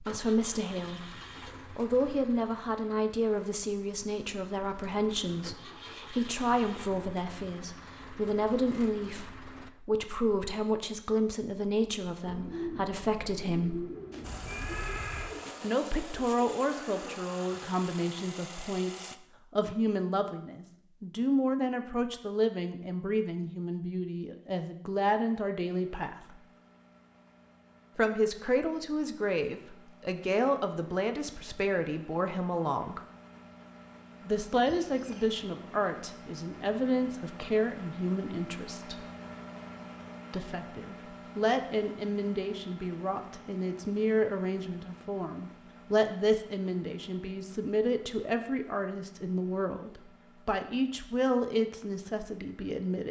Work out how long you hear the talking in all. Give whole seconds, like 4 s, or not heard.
47 s.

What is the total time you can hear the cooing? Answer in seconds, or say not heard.
5 s.